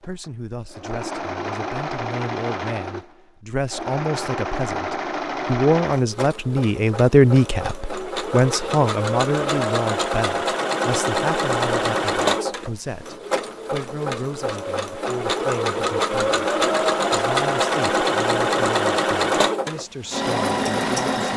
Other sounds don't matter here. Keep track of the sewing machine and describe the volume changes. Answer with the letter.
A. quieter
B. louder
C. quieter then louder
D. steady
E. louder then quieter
B.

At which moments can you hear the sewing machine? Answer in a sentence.
The sewing machine can be heard from 0.0 to 21.3 s.